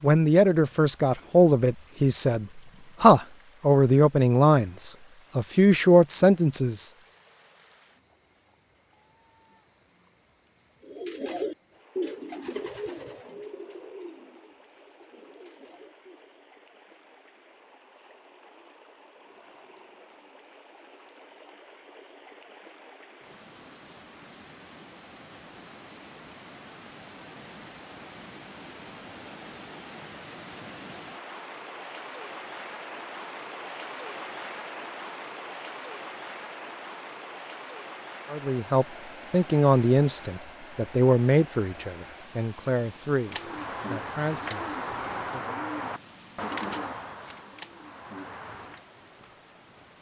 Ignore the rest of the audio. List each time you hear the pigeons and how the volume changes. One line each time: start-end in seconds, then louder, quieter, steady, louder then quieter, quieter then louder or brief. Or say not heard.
10.8-16.4 quieter
43.2-48.8 quieter.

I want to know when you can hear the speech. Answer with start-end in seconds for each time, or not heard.
0.0-6.9, 38.3-45.6.